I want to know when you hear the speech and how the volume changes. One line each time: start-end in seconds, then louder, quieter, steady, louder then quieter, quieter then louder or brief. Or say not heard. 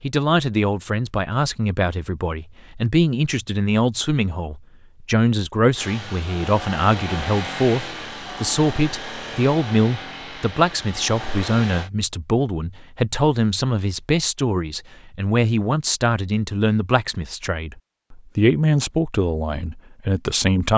0.0-20.7 steady.